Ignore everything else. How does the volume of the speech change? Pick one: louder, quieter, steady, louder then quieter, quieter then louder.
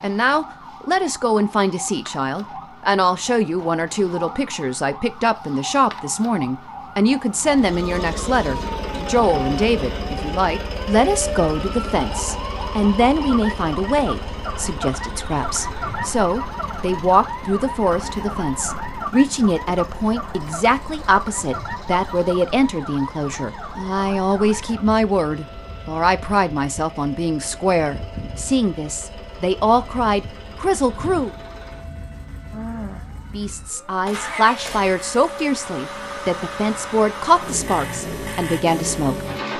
steady.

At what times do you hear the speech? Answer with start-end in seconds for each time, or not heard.
0.0-31.3, 33.3-39.2.